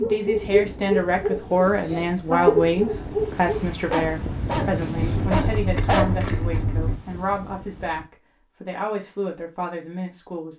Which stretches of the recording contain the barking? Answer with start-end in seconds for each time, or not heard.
0.0-6.6.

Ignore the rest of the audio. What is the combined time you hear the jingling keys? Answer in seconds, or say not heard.
2 s.